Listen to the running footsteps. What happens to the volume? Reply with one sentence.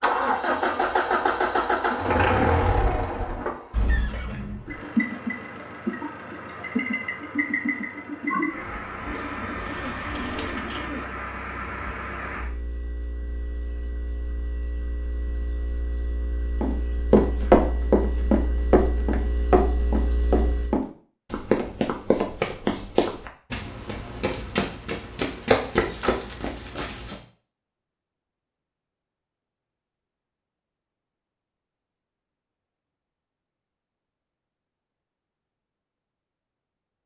The loudness of the running footsteps goes down.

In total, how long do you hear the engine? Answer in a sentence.
The engine can be heard for 21 seconds in total.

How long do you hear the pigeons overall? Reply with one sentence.
You can hear the pigeons for 2 seconds altogether.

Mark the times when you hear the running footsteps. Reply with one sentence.
The running footsteps can be heard from 16.6 to 27.2 s.